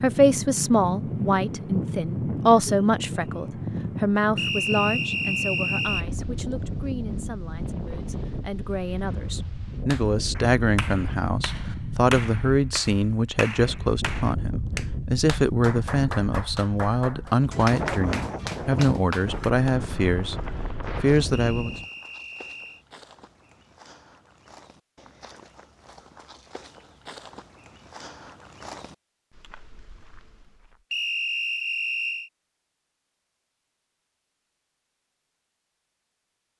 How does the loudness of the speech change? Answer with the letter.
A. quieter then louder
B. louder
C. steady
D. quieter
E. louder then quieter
A.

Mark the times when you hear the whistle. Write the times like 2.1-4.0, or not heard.
4.3-6.0, 21.3-22.9, 30.9-32.3.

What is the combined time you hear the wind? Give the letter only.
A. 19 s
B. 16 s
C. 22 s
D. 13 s
C.